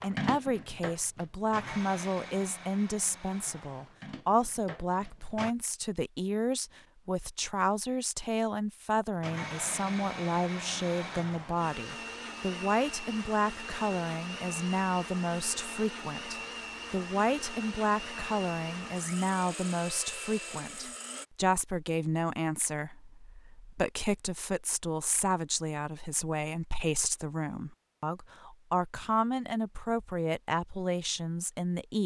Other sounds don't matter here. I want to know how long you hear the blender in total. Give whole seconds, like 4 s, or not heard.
18 s.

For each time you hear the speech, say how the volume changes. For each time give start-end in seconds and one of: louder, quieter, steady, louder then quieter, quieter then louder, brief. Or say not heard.
0.0-32.0 steady.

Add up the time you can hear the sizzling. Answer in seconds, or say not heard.
not heard.